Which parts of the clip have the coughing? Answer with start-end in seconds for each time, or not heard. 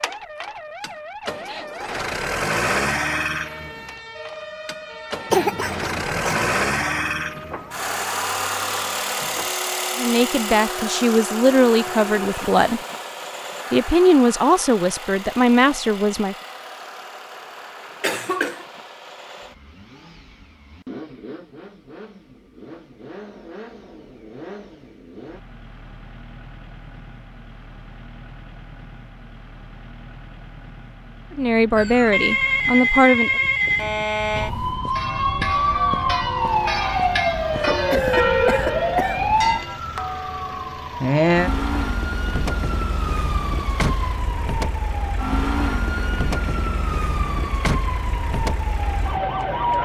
5.3-6.5, 18.0-18.6, 37.5-39.3.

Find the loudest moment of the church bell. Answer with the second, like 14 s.
38 s.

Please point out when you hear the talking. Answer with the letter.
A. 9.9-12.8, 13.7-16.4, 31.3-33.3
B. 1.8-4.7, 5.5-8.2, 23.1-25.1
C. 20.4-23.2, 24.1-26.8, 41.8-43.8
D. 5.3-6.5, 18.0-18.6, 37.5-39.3
A.